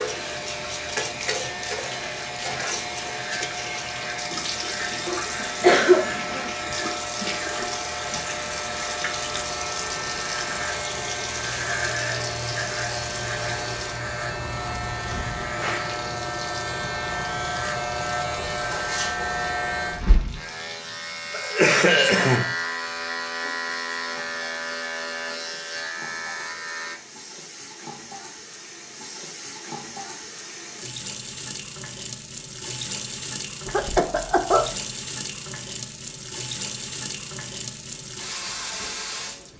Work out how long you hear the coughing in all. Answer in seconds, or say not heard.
3 s.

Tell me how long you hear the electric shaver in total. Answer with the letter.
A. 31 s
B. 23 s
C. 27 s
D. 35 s
C.